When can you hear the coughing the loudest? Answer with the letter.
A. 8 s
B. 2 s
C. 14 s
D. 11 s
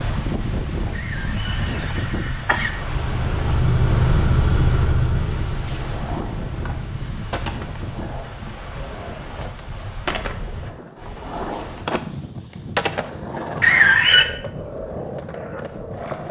C.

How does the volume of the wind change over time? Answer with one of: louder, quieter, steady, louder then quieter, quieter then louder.
quieter.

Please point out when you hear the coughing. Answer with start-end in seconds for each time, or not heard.
0.9-2.7, 13.6-14.2.